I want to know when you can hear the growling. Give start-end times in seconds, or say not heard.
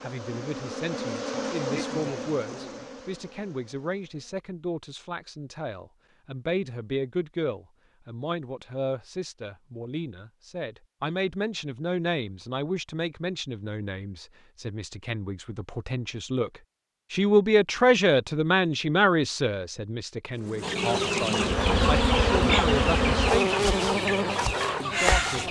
not heard.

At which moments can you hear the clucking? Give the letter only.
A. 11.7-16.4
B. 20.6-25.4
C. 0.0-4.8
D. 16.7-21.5
B.